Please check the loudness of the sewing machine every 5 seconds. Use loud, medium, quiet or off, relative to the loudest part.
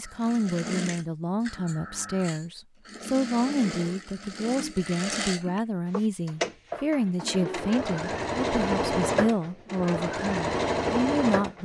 medium, loud, loud.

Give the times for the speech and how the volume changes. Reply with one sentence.
You can hear the speech from 0.0 to 11.6 s, at a steady volume.